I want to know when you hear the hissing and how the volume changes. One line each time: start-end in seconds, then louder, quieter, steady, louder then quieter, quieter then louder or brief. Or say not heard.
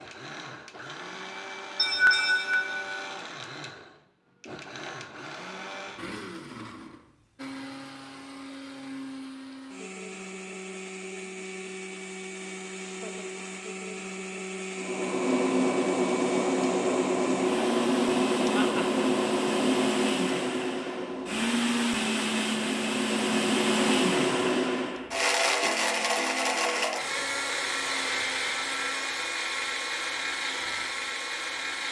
14.8-25.1 quieter then louder.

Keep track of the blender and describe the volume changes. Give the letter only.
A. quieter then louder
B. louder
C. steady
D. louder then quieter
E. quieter
B.